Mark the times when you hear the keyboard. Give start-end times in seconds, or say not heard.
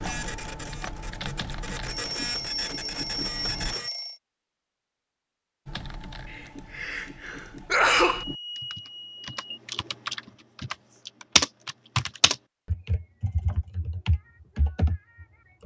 0.0-3.8, 5.7-15.6.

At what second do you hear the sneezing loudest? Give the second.
8 s.